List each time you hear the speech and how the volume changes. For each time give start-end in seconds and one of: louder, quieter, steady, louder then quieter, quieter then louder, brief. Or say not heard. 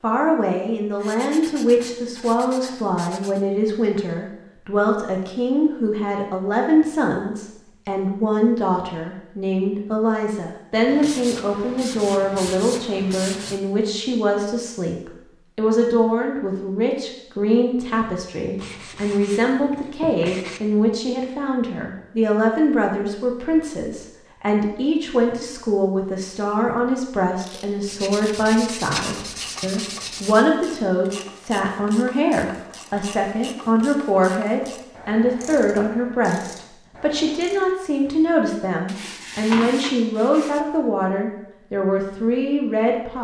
0.0-43.1 steady.